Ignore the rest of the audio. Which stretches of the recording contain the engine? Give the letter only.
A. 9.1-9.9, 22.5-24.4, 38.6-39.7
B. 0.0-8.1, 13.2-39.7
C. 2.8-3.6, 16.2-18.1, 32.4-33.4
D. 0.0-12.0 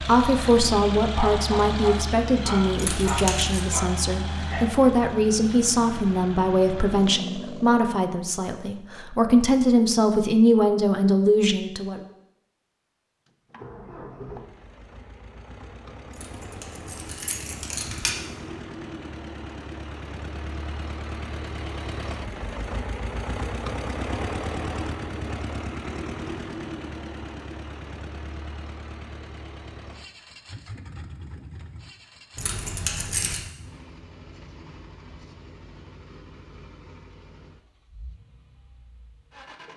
B.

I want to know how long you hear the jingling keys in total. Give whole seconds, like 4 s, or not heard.
4 s.